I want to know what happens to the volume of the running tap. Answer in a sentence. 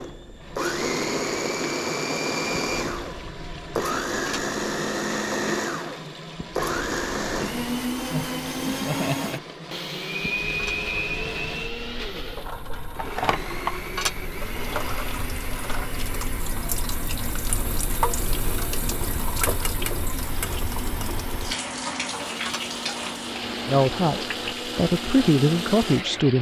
The loudness of the running tap goes up.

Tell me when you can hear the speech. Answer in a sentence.
The speech can be heard from 23.6 to 26.3 s.